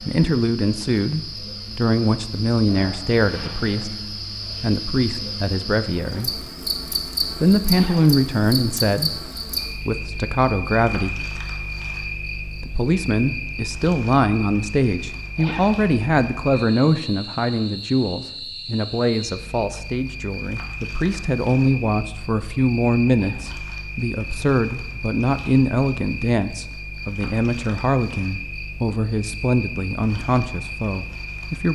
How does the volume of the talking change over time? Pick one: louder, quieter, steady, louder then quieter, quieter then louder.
steady.